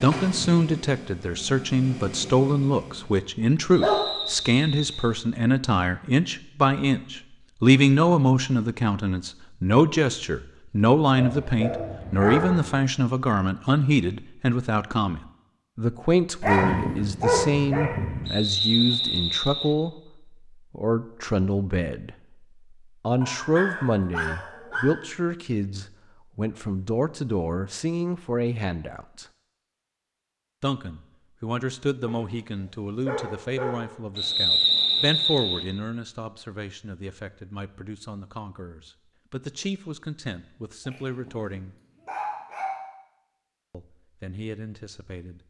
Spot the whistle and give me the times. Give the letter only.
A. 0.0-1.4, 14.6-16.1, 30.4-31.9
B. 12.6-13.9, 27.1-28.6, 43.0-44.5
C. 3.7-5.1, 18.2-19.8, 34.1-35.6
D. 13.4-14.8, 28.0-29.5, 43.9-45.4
C.